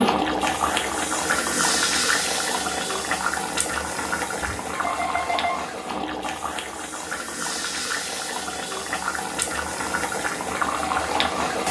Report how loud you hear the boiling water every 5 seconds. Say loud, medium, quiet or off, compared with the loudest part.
loud, medium, loud.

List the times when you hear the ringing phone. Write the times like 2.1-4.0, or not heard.
4.4-5.7.